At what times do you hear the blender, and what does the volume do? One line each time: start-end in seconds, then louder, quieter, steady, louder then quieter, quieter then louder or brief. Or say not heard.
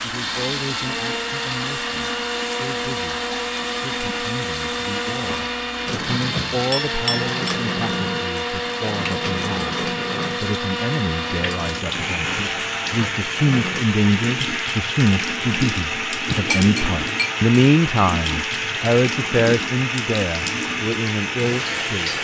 0.0-22.1 steady.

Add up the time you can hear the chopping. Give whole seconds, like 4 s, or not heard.
not heard.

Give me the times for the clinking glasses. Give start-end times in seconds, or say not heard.
6.7-7.3, 16.2-17.3.